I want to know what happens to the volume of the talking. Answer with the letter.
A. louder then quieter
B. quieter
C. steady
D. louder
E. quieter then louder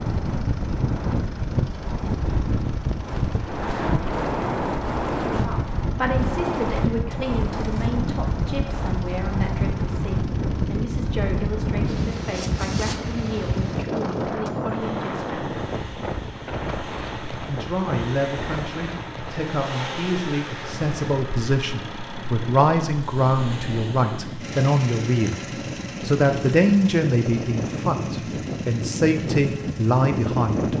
D.